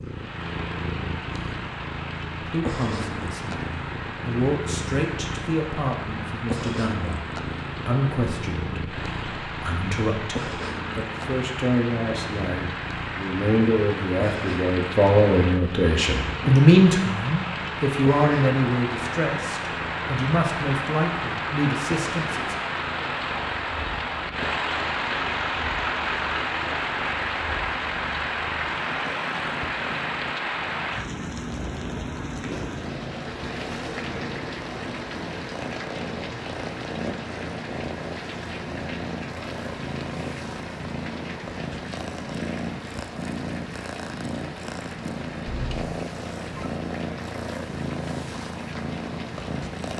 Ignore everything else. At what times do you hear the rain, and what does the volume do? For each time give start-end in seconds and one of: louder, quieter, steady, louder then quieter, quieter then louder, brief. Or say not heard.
0.0-49.9 louder then quieter.